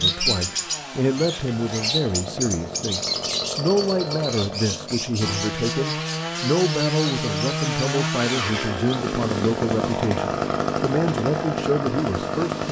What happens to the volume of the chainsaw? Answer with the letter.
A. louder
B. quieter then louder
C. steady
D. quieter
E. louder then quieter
A.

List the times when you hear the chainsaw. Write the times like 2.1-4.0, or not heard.
0.0-12.6.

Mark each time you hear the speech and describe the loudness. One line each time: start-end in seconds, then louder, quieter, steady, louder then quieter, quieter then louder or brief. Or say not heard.
0.0-12.6 steady.